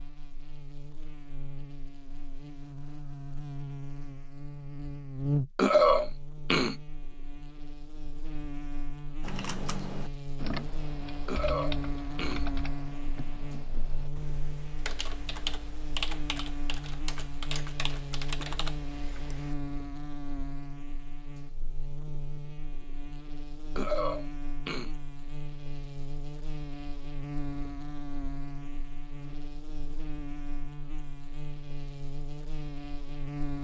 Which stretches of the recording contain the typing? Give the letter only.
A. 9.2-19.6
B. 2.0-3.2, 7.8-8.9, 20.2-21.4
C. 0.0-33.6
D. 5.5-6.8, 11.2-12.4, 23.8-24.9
A.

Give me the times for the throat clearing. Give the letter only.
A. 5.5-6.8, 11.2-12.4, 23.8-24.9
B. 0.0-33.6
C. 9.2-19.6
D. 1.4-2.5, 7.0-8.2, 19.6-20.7
A.